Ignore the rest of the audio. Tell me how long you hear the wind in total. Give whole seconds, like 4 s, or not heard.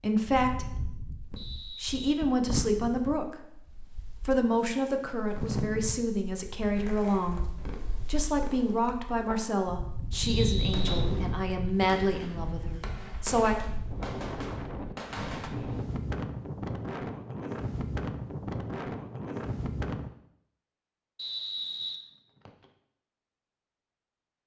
20 s.